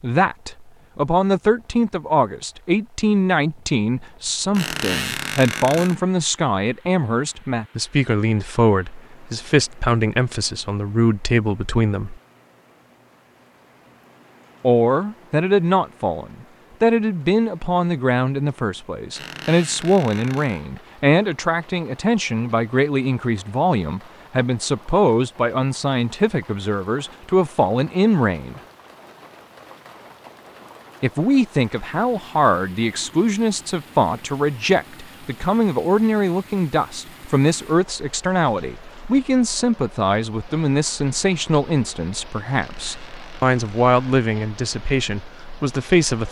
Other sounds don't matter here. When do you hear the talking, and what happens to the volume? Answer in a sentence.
The talking can be heard from 0.0 to 12.2 s, at a steady volume; from 14.6 to 28.6 s, at a steady volume; and from 31.0 to 46.2 s, at a steady volume.